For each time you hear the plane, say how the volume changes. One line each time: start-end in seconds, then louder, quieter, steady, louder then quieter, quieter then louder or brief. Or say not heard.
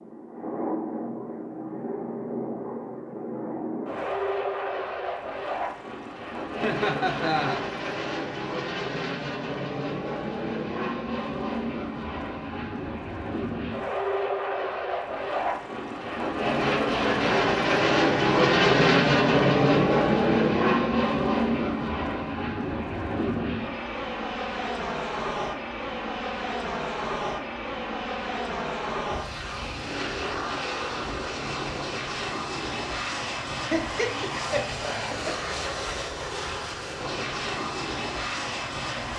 0.0-39.1 louder then quieter.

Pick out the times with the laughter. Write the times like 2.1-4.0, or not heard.
6.6-7.6, 33.5-35.5.